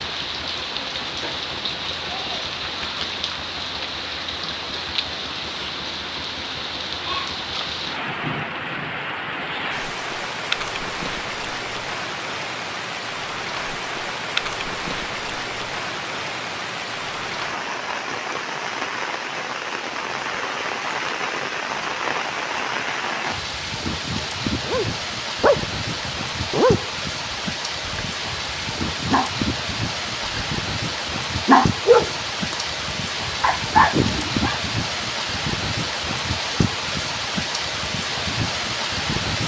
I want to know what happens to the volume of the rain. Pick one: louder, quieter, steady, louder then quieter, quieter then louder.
steady.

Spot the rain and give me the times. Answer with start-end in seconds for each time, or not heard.
0.0-39.4.